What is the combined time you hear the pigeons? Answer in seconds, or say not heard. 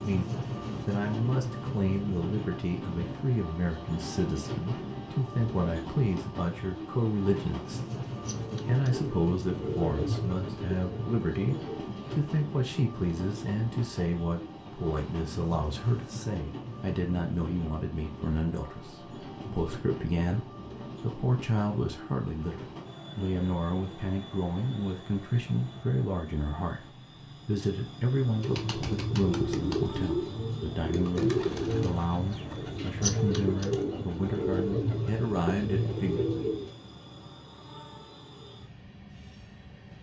12 s.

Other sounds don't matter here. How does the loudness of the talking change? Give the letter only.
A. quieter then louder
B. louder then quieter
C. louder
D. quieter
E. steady
E.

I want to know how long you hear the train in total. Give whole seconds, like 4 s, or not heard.
40 s.